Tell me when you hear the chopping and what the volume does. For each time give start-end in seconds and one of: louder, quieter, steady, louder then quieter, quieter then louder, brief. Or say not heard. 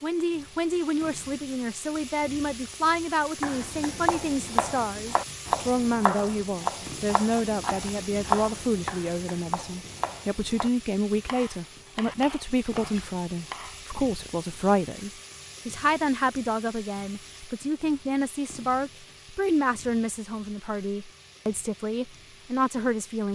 3.4-13.8 quieter.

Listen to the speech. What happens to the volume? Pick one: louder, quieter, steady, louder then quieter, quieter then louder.
steady.